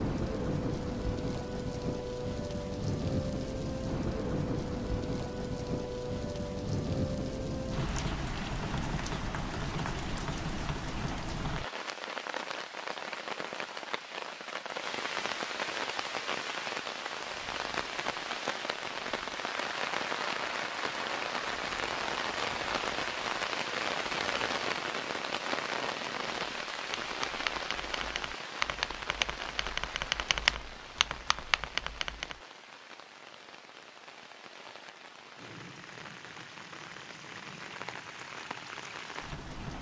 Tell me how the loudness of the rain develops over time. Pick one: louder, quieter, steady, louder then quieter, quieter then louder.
quieter.